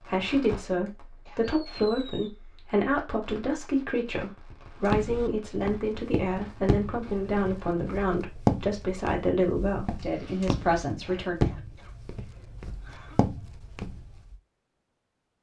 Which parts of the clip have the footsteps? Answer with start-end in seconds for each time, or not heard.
4.8-14.3.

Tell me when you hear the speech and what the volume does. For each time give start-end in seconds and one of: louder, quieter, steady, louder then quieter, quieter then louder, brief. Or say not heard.
0.0-11.3 steady.